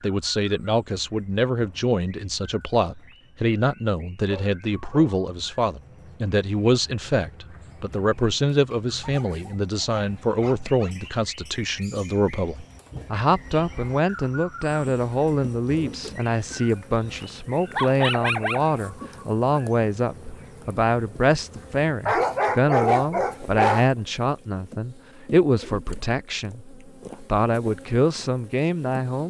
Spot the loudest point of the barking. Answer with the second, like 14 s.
23 s.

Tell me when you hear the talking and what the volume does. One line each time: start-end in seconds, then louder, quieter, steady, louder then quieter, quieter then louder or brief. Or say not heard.
0.0-29.2 steady.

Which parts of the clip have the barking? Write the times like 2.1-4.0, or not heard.
4.2-5.2, 9.0-10.9, 17.2-18.8, 22.1-23.9.